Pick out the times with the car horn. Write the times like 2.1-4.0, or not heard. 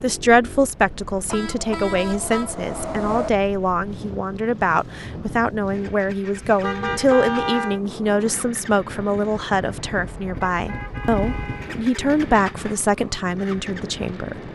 1.2-3.3, 6.6-7.8, 10.4-11.8.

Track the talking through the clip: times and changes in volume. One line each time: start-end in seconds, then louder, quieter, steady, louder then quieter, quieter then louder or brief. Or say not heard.
0.0-14.4 steady.